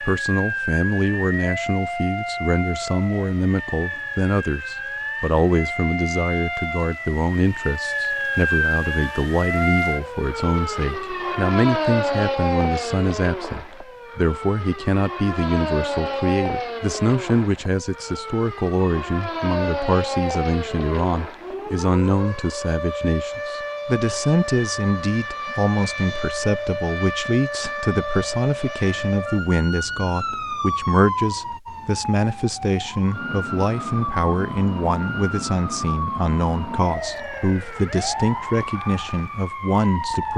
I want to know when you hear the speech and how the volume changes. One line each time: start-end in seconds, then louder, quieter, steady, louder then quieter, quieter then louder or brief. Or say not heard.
0.0-40.3 steady.